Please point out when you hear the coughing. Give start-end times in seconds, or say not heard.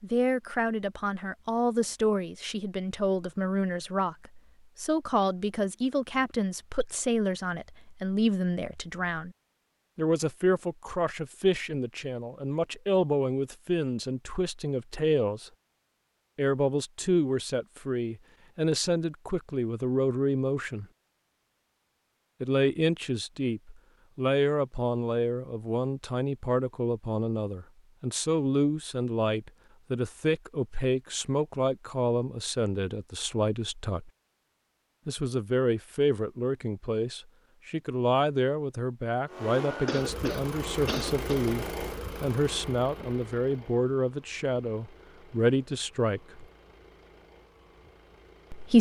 39.9-41.5.